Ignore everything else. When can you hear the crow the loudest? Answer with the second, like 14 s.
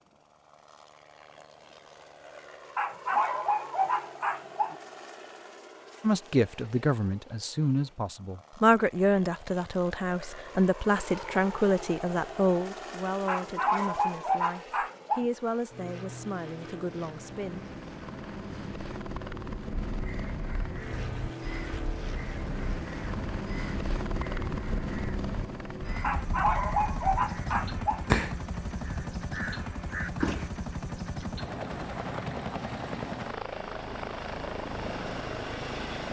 28 s.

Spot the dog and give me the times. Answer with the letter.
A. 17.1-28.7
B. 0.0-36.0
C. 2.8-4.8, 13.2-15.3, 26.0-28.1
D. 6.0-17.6
C.